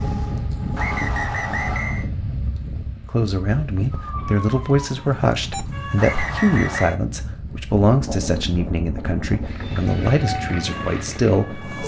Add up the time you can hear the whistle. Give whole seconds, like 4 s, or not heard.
2 s.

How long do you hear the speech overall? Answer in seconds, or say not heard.
9 s.